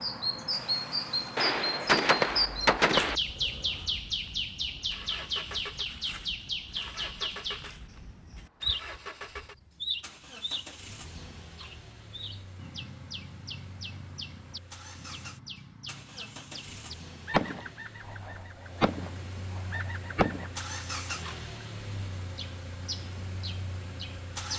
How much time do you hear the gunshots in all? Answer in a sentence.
The gunshots can be heard for 5 seconds in total.